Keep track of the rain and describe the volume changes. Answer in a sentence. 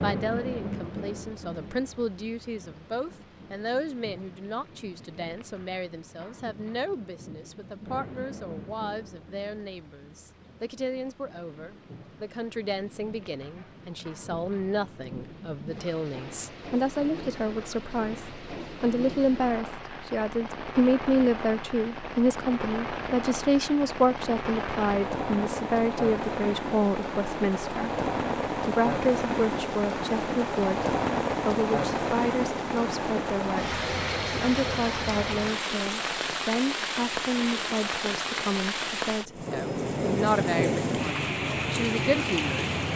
The volume of the rain goes up.